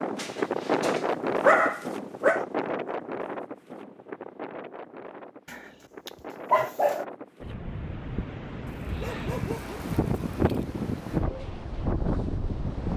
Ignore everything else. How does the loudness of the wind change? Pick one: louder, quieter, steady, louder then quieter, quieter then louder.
quieter then louder.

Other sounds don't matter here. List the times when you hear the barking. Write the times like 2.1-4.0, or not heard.
0.1-2.5, 5.5-7.0, 8.7-10.7.